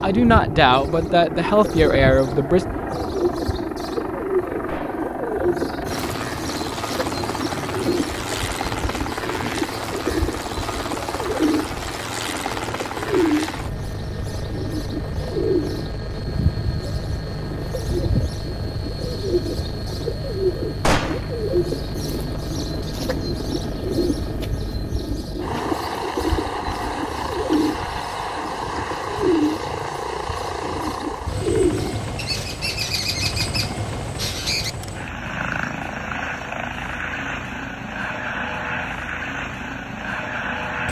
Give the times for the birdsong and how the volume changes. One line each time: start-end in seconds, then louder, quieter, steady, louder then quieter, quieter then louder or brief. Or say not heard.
0.0-34.7 steady.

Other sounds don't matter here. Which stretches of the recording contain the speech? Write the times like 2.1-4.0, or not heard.
0.0-2.6.